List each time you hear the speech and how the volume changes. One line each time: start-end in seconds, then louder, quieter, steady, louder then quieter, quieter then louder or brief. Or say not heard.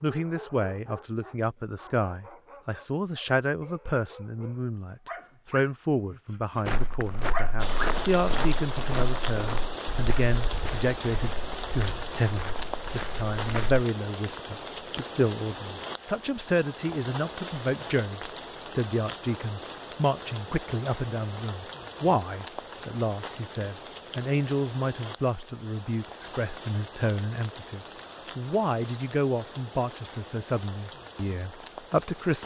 0.0-32.4 steady.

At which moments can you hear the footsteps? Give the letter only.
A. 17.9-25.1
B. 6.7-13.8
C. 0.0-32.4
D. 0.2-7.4
B.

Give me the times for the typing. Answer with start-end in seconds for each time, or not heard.
not heard.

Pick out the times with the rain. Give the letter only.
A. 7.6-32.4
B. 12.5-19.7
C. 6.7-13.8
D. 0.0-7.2
A.